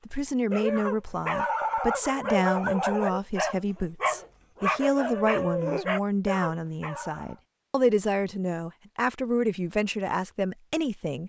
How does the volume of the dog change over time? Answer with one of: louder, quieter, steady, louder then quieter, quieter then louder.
steady.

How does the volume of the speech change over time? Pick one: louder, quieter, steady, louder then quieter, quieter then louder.
steady.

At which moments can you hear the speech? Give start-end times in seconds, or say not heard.
0.1-11.2.